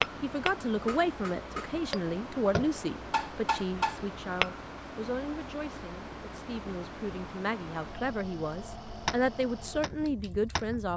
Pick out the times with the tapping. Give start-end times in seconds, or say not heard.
0.0-4.5, 9.1-10.8.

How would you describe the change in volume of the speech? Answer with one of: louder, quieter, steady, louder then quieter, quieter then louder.
quieter then louder.